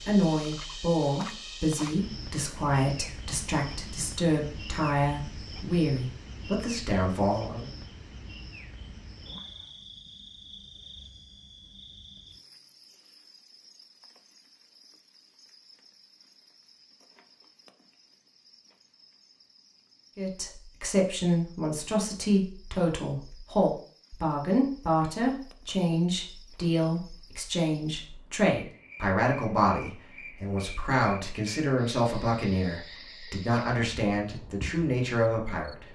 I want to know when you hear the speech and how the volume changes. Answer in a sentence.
The speech can be heard from 0.1 to 7.7 s, at a steady volume; and from 20.1 to 35.8 s, at a steady volume.